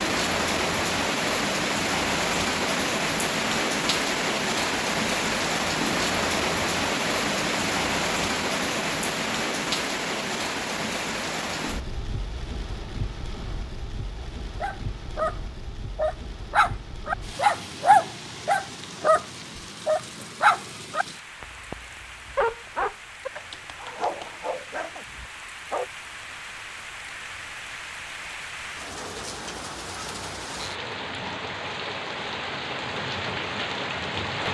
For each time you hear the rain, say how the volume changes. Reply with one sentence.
The rain can be heard from 0.0 to 34.5 s, getting quieter then louder.